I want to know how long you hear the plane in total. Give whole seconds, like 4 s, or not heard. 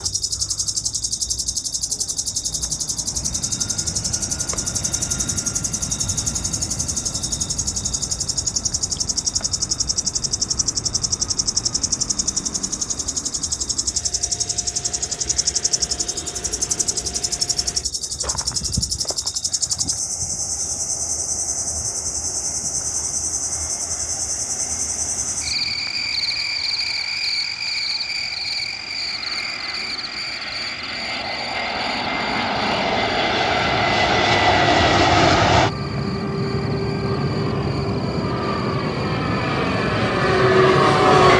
41 s.